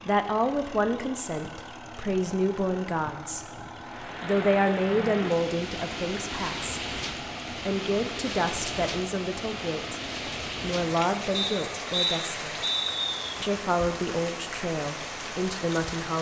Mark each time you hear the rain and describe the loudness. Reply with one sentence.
You can hear the rain from 3.8 to 16.1 s, at a steady volume.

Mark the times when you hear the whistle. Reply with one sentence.
You can hear the whistle from 11.3 to 13.3 s.